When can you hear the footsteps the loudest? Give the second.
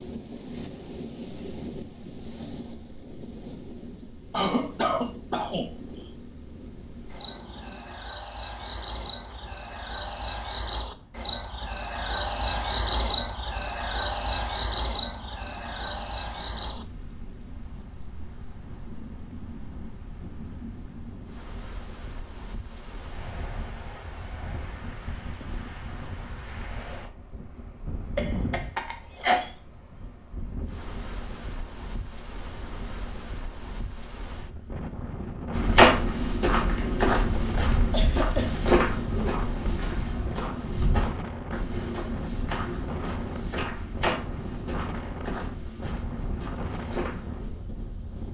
36 s.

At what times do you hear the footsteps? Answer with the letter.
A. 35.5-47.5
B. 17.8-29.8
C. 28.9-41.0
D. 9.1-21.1
A.